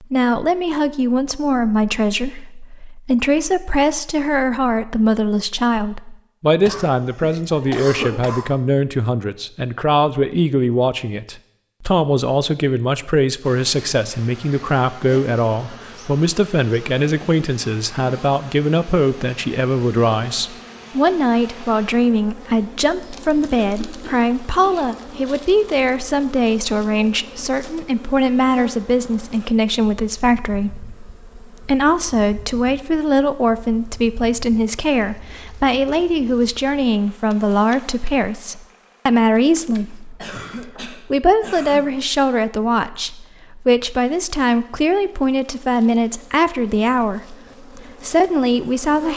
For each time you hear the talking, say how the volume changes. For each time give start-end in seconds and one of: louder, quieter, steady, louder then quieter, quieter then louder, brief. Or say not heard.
0.0-49.1 steady.